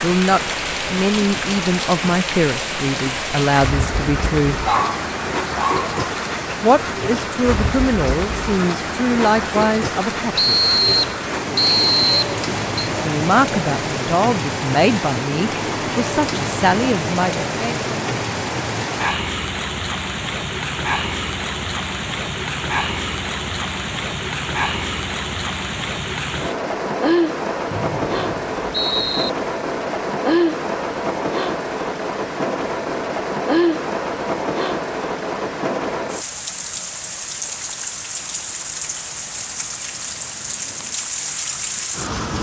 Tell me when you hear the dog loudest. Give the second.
5 s.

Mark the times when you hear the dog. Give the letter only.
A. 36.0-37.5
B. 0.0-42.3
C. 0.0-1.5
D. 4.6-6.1
D.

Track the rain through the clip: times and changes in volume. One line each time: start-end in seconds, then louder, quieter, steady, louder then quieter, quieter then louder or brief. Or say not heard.
0.0-42.3 steady.